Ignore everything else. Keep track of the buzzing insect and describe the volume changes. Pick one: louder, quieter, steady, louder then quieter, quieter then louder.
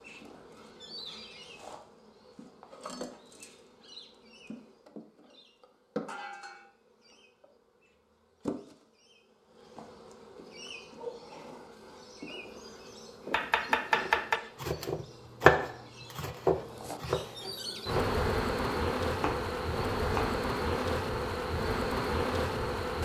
louder.